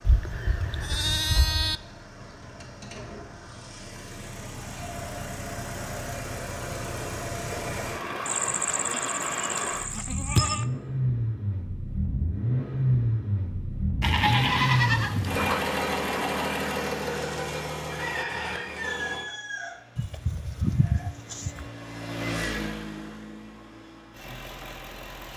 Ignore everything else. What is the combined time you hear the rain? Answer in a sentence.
The rain can't be heard in this clip.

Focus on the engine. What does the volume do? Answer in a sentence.
The volume of the engine goes up, then down.